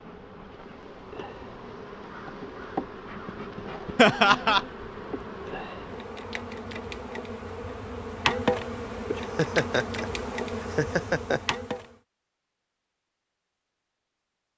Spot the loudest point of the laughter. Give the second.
4 s.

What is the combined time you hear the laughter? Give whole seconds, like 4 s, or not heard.
3 s.